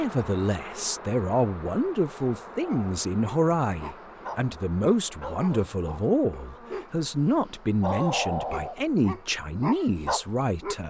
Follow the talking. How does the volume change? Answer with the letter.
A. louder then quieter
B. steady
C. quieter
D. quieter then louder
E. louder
B.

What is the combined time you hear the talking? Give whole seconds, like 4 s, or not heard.
11 s.